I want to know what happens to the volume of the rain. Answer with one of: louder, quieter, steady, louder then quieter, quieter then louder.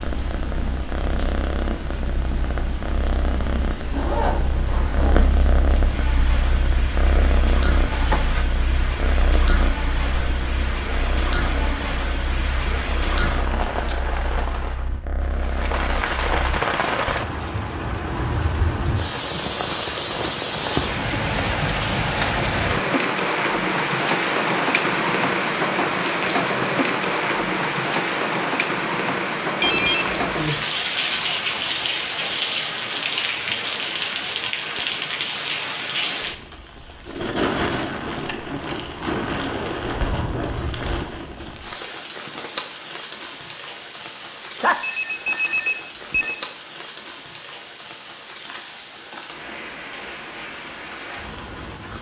louder then quieter.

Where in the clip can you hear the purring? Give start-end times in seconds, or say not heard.
0.0-16.6.